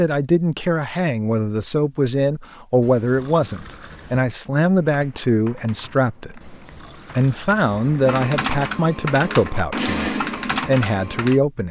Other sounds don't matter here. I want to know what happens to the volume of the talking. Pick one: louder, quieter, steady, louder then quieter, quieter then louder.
steady.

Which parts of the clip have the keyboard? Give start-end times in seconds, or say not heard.
4.8-11.4.